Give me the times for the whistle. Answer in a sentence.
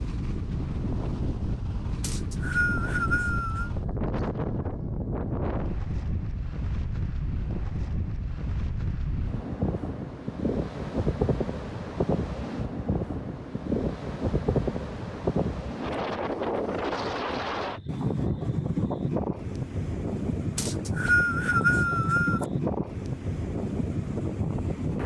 The whistle can be heard from 2.0 to 3.7 s and from 20.6 to 22.4 s.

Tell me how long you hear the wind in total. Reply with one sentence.
You can hear the wind for 25 seconds altogether.